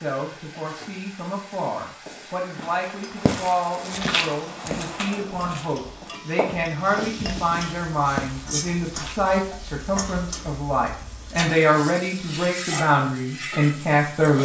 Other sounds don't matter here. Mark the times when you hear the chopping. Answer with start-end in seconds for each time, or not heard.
not heard.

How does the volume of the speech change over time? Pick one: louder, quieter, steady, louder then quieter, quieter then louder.
louder.